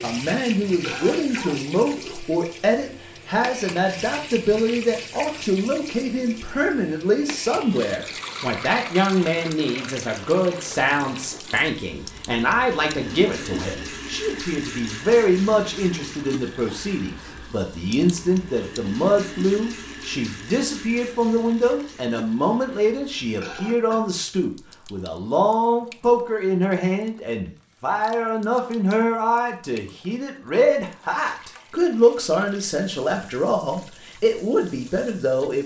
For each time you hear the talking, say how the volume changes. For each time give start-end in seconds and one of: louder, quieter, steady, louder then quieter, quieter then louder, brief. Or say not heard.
0.0-35.6 steady.